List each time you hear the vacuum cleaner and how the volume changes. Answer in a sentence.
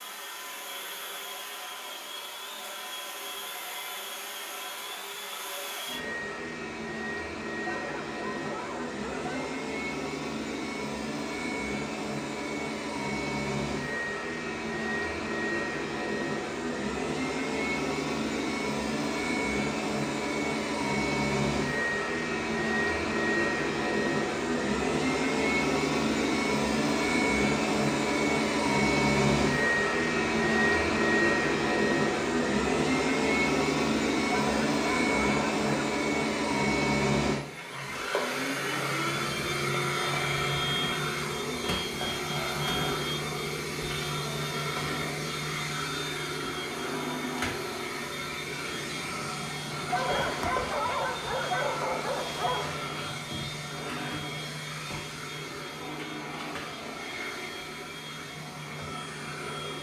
You can hear the vacuum cleaner from 0.0 to 59.7 s, getting louder then quieter.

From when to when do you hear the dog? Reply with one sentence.
The dog can be heard from 7.6 to 9.6 s, from 34.3 to 35.6 s and from 49.9 to 52.8 s.